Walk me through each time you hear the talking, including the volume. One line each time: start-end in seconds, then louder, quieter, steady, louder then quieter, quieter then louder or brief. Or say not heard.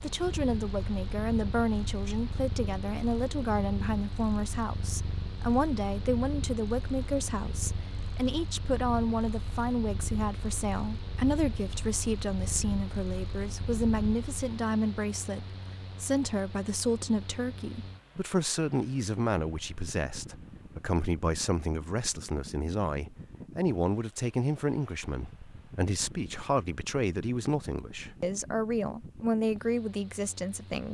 0.0-30.9 steady.